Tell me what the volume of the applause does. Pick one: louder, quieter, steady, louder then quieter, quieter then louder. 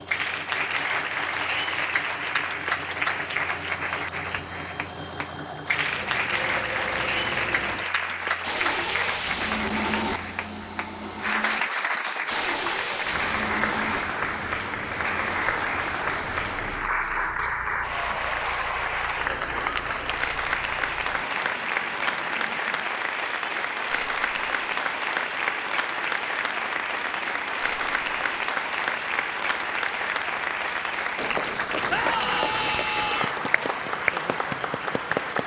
steady.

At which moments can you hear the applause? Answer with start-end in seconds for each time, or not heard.
0.0-35.4.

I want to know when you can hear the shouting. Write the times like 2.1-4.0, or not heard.
31.9-33.4.